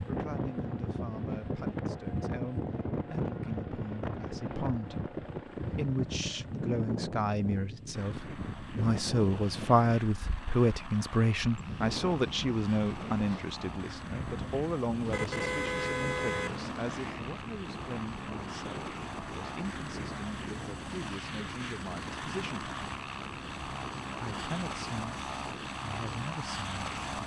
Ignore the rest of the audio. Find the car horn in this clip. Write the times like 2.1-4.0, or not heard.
15.1-16.9.